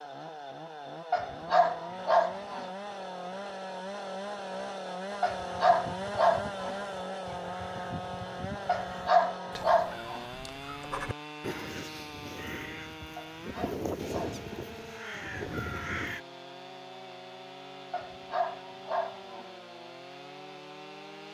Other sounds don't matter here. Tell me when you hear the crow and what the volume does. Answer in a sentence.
You can hear the crow from 5.3 to 16.2 s, getting louder.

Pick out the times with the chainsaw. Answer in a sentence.
You can hear the chainsaw from 0.0 to 21.2 s.